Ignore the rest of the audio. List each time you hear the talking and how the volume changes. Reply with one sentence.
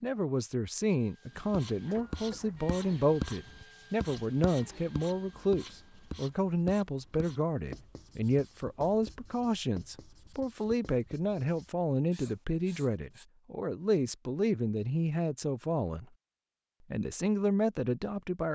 You can hear the talking from 0.0 to 16.1 s, at a steady volume; and briefly from 16.9 to 18.5 s.